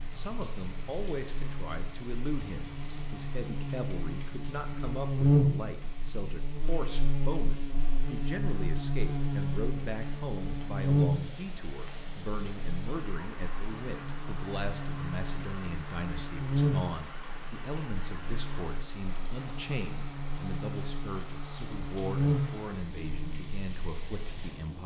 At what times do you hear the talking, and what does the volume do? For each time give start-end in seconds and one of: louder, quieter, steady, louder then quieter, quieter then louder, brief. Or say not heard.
0.0-24.8 steady.